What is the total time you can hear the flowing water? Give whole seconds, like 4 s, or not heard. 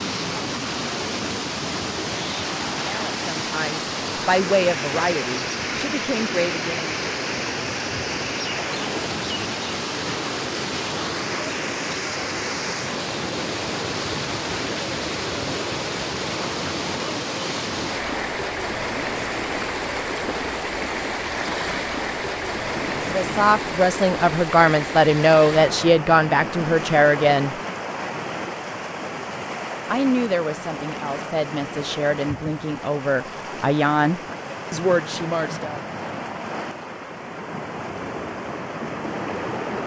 40 s.